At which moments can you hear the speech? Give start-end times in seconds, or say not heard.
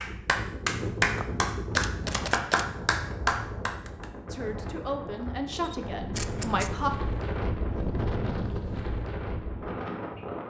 4.3-6.9.